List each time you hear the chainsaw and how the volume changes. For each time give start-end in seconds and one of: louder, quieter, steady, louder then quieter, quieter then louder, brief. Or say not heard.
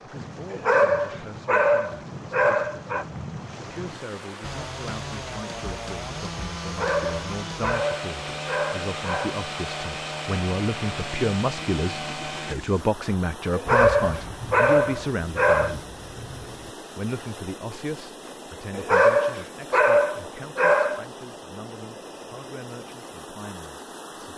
4.4-12.6 steady.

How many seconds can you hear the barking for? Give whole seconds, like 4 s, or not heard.
10 s.